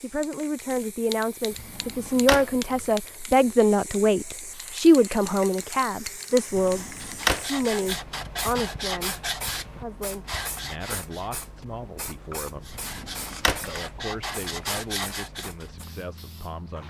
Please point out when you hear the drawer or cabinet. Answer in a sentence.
The drawer or cabinet can be heard from 1.5 to 2.5 s, from 6.5 to 7.5 s and from 12.7 to 13.8 s.